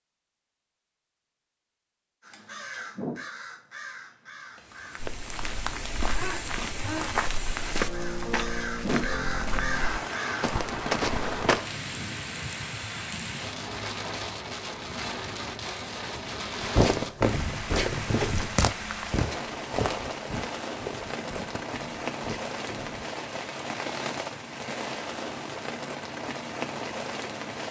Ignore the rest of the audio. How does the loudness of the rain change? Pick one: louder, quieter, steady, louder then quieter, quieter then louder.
steady.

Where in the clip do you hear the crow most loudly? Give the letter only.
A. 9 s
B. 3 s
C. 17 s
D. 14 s
A.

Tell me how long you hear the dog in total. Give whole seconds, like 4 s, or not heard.
not heard.